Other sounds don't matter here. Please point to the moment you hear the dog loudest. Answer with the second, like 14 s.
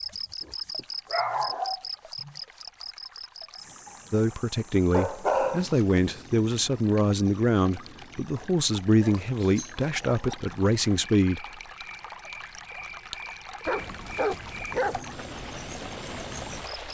5 s.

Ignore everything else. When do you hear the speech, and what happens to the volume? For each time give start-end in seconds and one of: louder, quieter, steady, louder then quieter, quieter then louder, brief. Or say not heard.
4.1-11.4 steady.